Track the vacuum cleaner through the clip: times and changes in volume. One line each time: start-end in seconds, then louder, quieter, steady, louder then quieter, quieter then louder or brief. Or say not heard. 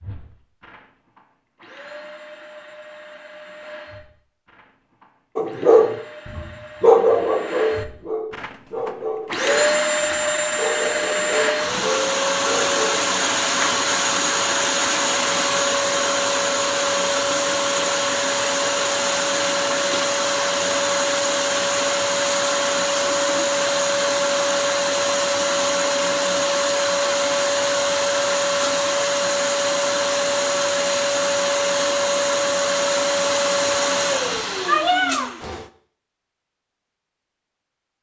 0.0-35.6 louder.